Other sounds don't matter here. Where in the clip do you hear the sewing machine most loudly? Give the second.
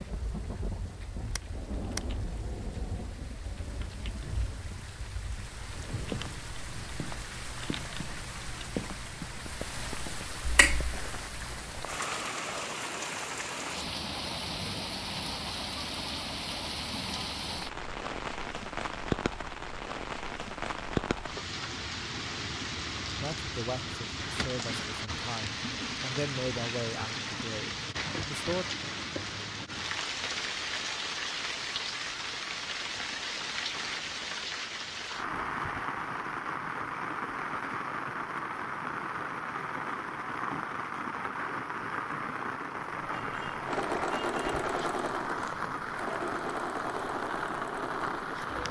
44 s.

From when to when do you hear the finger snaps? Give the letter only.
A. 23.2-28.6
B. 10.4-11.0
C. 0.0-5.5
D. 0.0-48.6
B.